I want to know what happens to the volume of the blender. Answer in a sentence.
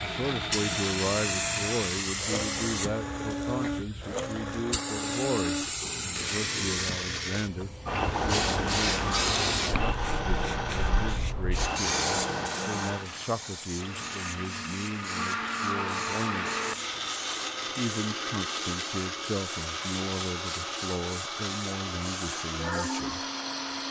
The volume of the blender stays about the same.